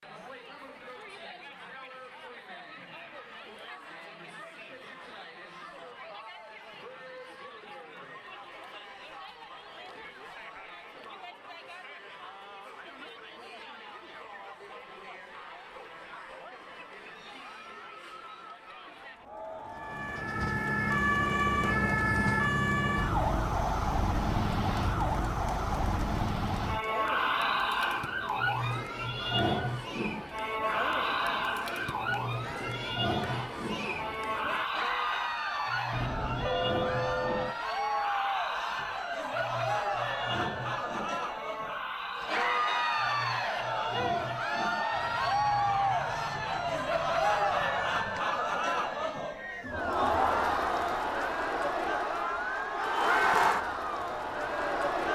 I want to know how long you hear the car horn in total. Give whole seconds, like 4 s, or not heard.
2 s.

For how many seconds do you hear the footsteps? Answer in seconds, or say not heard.
not heard.